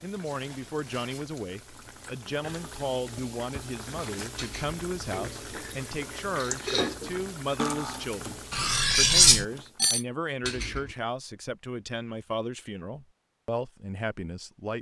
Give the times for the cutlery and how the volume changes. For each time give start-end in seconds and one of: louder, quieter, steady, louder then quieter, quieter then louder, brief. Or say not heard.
4.3-10.9 louder then quieter.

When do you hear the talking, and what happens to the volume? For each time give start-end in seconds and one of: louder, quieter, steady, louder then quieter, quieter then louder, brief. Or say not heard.
0.0-14.7 steady.